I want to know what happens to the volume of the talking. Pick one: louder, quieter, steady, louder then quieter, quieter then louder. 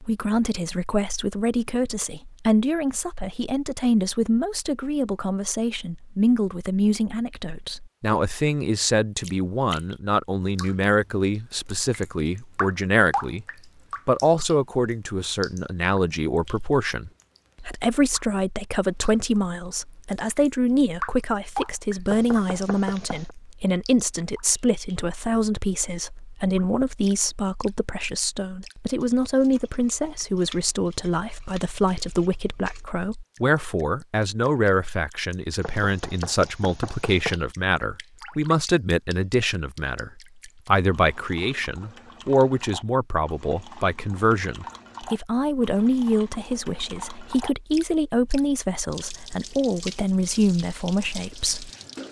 steady.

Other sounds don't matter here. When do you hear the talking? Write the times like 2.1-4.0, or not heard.
0.0-13.4, 14.1-51.7.